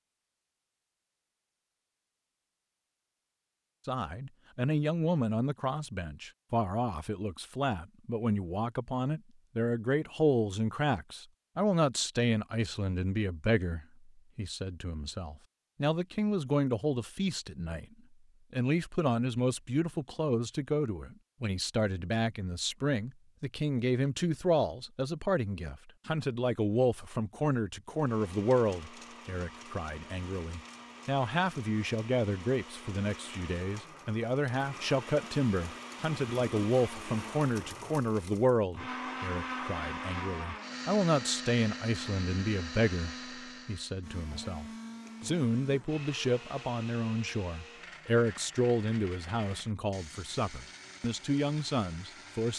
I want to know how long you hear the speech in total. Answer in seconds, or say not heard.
48 s.